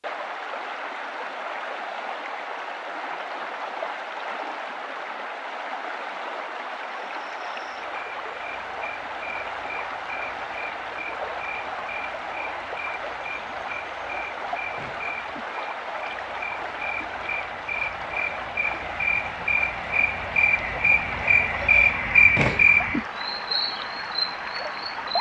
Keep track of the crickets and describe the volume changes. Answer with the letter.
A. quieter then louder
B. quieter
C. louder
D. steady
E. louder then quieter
C.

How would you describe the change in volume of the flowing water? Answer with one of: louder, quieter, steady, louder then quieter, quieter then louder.
steady.